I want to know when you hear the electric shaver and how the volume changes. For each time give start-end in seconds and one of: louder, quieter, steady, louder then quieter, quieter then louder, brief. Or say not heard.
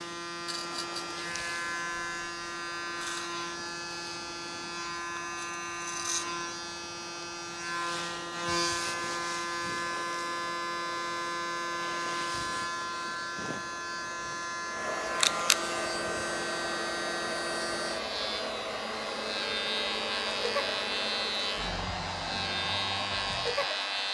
0.0-24.0 steady.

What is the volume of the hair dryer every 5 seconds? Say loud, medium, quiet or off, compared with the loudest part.
quiet, quiet, medium, loud, loud.